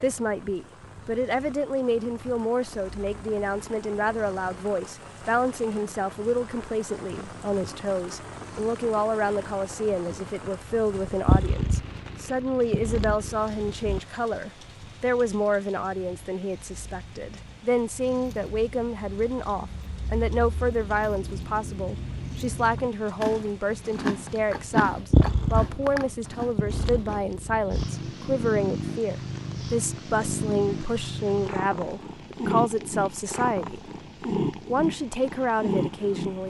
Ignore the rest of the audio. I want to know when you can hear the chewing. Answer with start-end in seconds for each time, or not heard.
18.2-27.2.